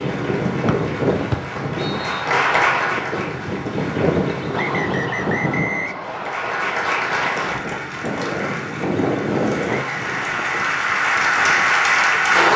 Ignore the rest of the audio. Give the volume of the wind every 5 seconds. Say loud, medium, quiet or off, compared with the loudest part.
loud, loud, quiet.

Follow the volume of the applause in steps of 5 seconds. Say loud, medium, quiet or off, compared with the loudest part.
medium, medium, loud.